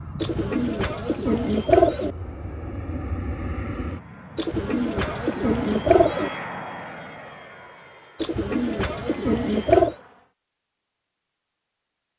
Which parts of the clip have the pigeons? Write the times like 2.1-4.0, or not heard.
0.2-2.1, 4.3-6.3, 8.2-9.9.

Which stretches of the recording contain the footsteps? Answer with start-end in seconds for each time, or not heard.
not heard.